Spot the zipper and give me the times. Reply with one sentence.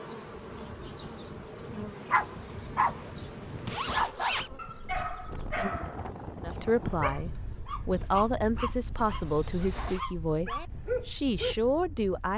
You can hear the zipper from 3.6 to 4.5 s and from 8.9 to 10.0 s.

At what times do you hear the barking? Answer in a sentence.
The barking can be heard from 2.1 to 3.1 s, from 3.9 to 6.0 s and from 7.0 to 11.6 s.